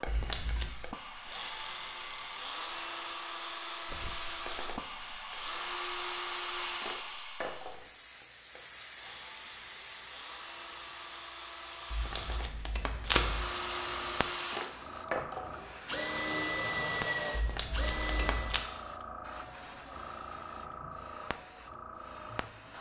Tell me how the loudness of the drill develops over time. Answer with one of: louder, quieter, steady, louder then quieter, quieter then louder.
quieter then louder.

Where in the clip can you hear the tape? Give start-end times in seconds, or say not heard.
0.1-0.8, 11.9-13.4, 17.3-18.6.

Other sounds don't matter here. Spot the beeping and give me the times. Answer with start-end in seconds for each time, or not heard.
not heard.